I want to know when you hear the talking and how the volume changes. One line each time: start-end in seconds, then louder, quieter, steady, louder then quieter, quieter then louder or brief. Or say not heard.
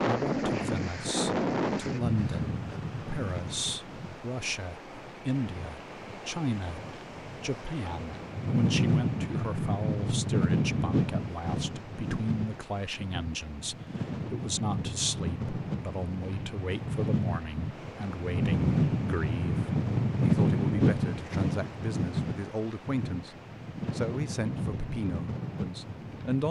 0.0-26.4 steady.